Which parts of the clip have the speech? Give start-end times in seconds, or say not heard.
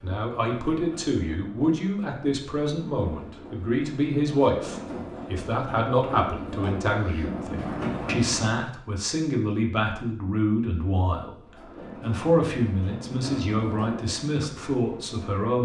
0.0-15.6.